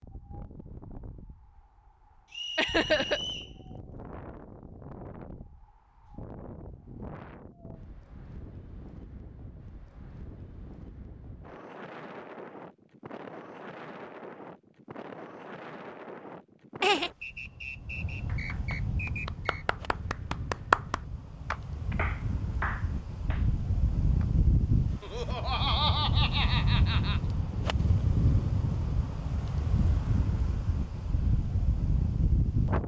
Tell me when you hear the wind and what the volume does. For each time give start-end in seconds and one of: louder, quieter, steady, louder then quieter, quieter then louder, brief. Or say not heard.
0.0-32.8 louder.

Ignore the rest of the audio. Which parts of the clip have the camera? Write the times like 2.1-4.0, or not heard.
not heard.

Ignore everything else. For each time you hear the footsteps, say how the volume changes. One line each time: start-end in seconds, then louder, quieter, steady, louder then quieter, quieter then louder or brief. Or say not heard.
not heard.